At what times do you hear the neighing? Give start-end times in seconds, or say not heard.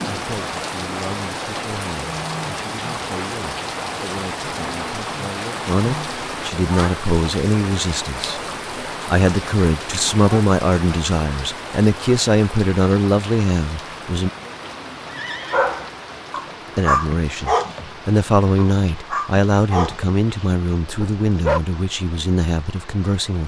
15.1-15.7.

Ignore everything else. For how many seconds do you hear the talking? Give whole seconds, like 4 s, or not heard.
20 s.